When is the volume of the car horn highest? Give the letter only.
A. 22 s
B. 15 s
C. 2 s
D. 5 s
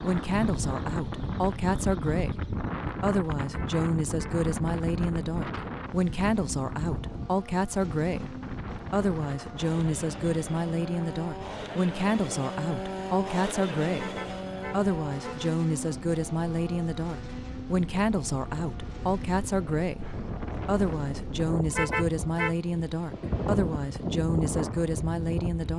A.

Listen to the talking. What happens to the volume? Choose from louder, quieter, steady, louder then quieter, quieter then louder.
steady.